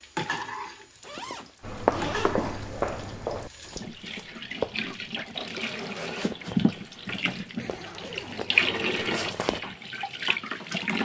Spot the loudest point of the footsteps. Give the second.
2 s.